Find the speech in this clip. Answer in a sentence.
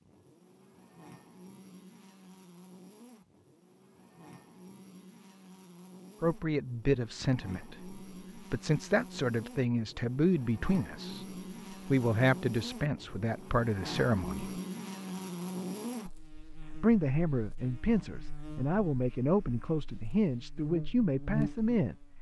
The speech can be heard from 6.2 to 14.6 s and from 16.8 to 21.9 s.